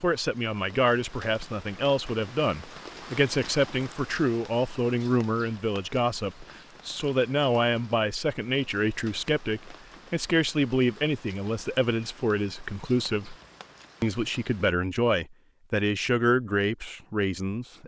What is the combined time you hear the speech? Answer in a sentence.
You can hear the speech for 17 seconds altogether.